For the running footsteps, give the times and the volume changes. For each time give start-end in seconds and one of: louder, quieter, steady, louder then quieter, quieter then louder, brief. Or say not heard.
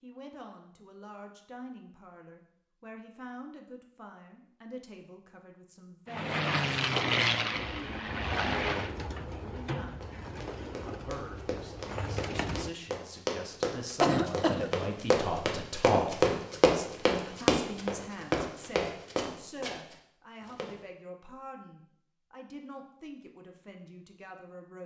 10.0-20.8 louder then quieter.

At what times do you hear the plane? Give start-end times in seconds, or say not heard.
6.0-8.9.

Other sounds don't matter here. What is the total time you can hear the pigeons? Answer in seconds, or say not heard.
5 s.